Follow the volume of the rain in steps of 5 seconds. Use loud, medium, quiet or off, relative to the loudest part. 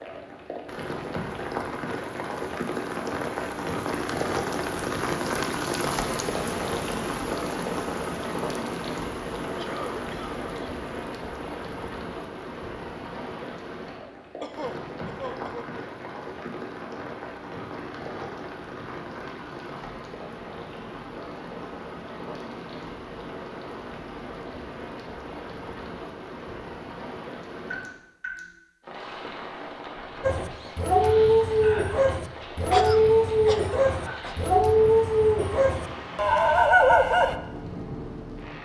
loud, loud, medium, medium, medium, medium, medium, medium.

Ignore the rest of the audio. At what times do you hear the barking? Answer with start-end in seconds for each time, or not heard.
30.2-37.4.